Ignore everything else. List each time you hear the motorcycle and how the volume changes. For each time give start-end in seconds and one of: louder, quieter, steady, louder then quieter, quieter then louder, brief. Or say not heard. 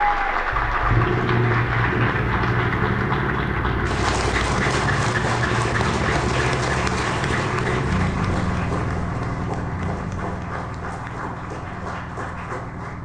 0.0-13.0 quieter.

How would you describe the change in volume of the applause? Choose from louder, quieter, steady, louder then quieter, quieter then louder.
quieter.